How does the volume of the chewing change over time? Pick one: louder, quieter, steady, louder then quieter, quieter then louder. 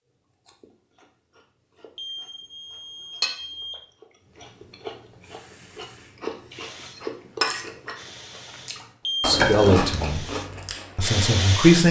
louder.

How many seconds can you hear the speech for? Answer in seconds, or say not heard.
2 s.